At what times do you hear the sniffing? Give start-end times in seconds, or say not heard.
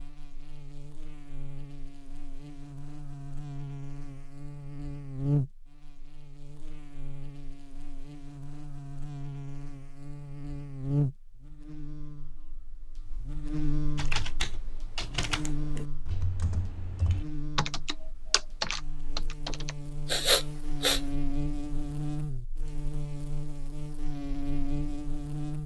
20.1-21.0.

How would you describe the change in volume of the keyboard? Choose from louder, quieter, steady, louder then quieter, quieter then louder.
quieter then louder.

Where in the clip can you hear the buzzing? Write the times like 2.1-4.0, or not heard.
0.0-25.6.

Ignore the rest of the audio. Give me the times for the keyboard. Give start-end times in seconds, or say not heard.
13.9-19.8.